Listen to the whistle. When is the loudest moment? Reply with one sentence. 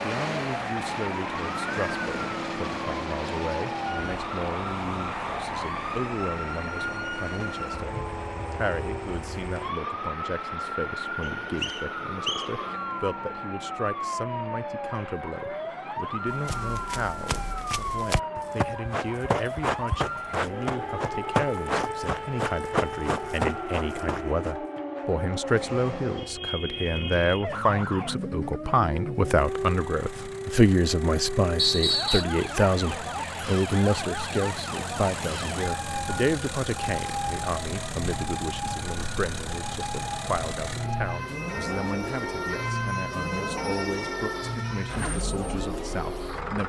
The volume of the whistle peaks at 32 seconds.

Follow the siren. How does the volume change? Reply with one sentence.
The volume of the siren stays about the same.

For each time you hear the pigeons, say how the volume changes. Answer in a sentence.
The pigeons can't be heard in this clip.